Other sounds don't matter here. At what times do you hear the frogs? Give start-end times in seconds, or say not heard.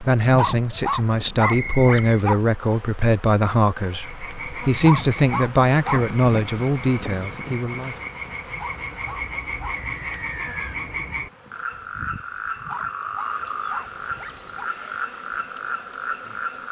3.9-16.6.